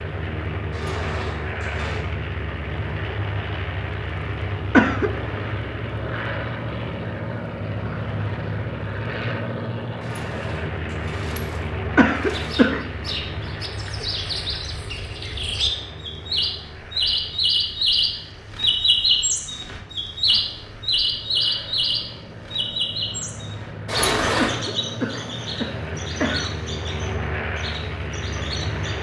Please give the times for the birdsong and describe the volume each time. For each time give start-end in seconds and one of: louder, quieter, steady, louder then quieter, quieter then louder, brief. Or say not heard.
12.3-28.9 louder then quieter.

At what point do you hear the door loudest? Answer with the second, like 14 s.
24 s.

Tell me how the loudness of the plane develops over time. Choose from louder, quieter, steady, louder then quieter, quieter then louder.
quieter then louder.